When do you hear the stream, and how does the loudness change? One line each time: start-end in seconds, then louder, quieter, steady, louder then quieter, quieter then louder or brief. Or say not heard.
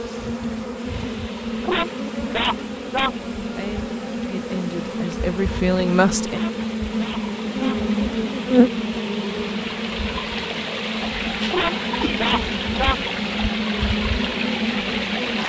0.0-15.4 louder.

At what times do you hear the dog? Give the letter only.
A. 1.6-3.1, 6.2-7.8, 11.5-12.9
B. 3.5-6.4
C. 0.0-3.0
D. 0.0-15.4
A.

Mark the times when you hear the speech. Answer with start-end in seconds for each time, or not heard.
3.5-6.4.